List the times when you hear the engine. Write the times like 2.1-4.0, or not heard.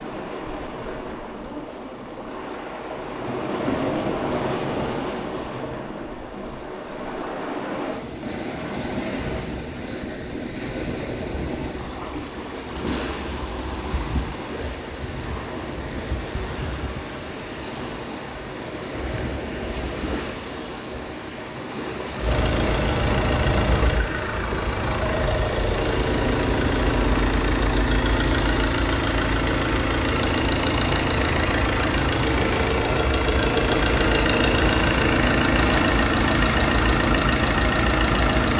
22.2-38.5.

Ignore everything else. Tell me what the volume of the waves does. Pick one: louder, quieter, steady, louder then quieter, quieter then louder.
steady.